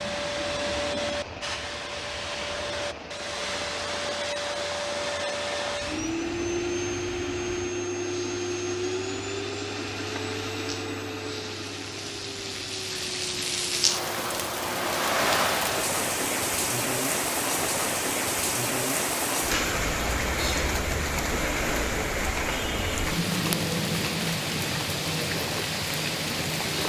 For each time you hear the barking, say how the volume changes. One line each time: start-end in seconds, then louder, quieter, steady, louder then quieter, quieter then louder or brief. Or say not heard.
not heard.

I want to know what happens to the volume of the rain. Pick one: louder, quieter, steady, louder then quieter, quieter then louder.
louder.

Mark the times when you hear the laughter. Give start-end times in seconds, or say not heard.
not heard.